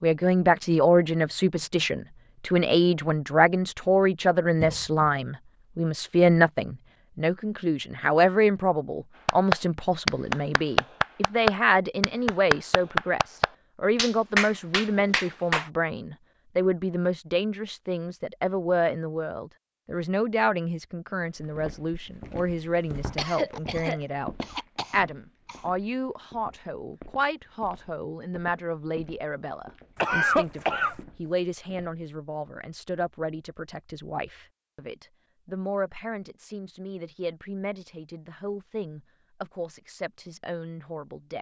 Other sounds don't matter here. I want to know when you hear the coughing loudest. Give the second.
30 s.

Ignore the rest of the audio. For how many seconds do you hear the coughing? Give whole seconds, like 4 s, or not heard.
4 s.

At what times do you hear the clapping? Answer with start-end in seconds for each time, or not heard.
9.2-15.7.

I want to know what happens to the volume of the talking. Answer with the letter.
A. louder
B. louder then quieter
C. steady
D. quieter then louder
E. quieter
E.